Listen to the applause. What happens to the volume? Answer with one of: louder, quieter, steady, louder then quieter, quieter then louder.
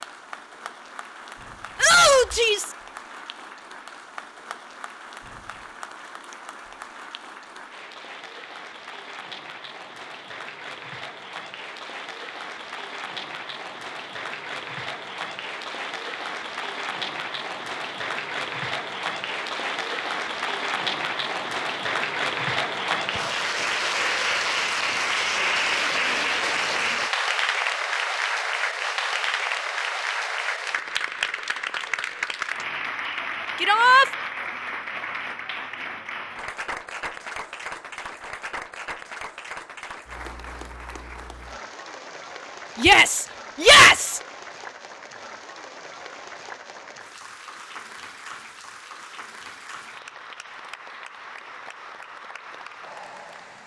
louder then quieter.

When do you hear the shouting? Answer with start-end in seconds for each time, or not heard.
1.8-2.8, 33.6-34.0, 42.8-44.2.